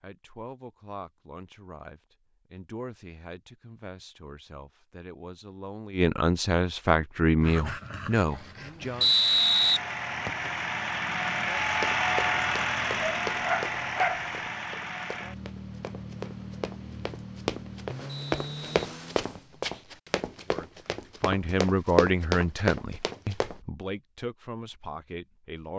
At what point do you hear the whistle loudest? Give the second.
9 s.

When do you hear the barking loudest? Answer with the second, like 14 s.
14 s.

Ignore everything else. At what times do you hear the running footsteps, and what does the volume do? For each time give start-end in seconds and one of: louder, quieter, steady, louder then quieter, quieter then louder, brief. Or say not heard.
11.8-23.6 quieter then louder.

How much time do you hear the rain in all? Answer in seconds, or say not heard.
not heard.